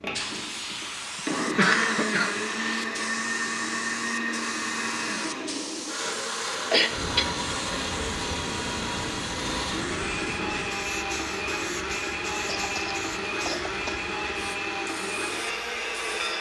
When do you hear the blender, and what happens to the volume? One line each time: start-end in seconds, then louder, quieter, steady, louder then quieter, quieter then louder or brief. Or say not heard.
0.0-16.3 steady.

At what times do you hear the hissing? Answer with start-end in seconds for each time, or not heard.
0.1-16.3.